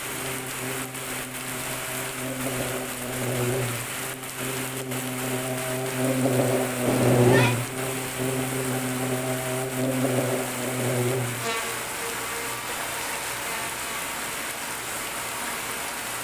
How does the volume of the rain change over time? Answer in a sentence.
The volume of the rain stays about the same.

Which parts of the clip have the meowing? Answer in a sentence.
The meowing can be heard from 6.8 to 7.5 s.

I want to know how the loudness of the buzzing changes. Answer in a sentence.
The volume of the buzzing goes up, then down.